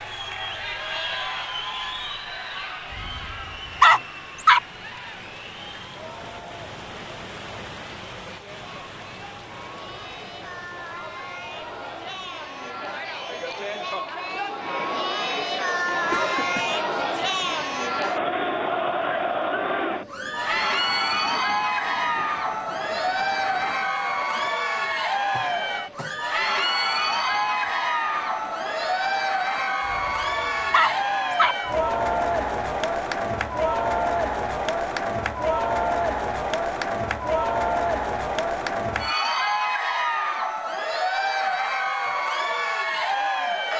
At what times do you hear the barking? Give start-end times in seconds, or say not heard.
3.0-4.6, 29.9-31.6.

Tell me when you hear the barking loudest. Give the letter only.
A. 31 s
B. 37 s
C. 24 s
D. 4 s
D.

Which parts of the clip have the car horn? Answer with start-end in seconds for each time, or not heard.
not heard.